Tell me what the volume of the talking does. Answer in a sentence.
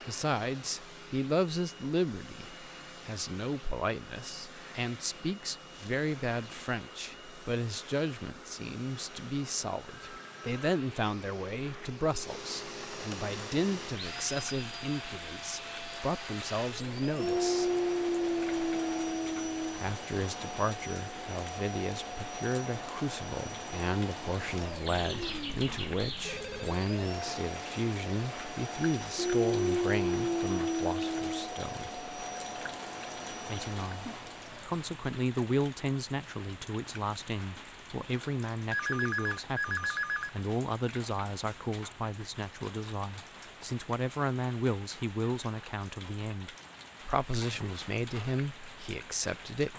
The volume of the talking stays about the same.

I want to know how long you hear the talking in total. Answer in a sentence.
The talking can be heard for 46 seconds in total.